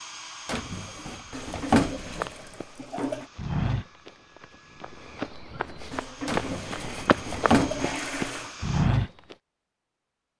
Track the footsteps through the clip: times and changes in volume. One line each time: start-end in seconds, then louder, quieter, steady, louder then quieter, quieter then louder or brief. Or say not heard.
2.0-9.3 quieter then louder.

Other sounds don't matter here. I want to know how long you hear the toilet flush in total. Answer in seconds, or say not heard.
5 s.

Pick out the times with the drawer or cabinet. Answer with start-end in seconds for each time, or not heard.
0.5-2.3, 6.2-8.0.